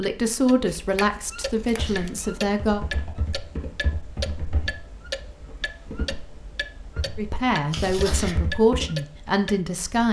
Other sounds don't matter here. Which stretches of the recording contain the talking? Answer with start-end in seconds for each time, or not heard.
0.0-2.8, 7.2-10.0.